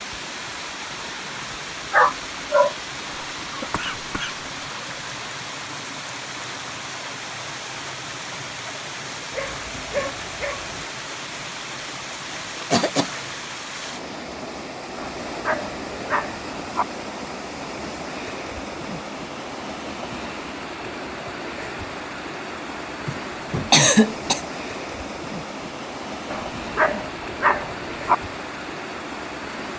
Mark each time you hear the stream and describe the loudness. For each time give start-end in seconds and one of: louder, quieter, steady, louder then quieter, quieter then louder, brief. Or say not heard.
0.0-29.7 steady.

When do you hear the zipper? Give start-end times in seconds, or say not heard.
not heard.